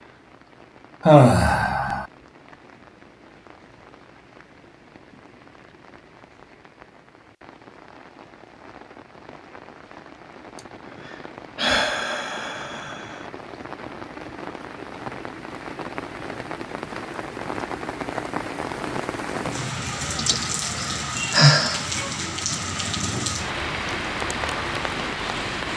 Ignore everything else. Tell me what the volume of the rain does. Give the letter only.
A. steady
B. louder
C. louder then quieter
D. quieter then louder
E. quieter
B.